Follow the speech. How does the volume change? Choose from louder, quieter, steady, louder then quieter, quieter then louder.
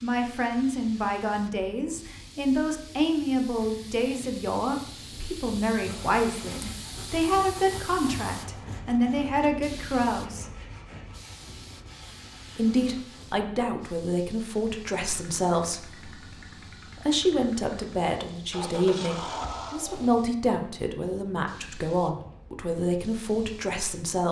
steady.